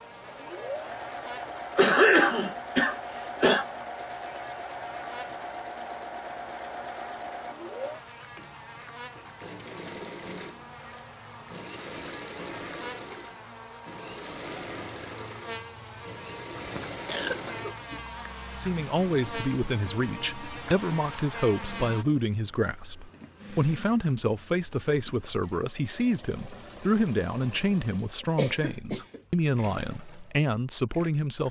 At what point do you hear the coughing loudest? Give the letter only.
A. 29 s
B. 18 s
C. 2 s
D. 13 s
C.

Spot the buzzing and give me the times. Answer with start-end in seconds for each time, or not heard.
0.0-22.1.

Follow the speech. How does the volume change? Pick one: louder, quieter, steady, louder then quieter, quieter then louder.
steady.